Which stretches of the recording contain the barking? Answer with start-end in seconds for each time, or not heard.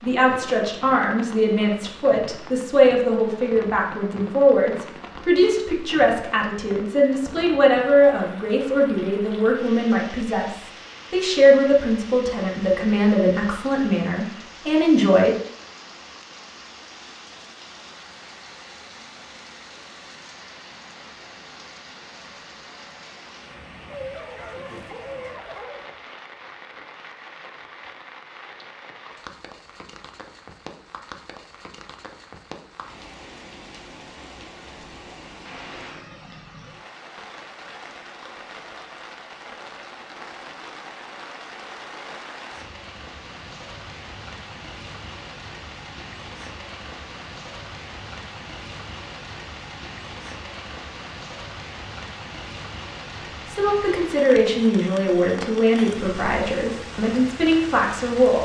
23.9-25.9.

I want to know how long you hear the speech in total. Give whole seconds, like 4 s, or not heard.
20 s.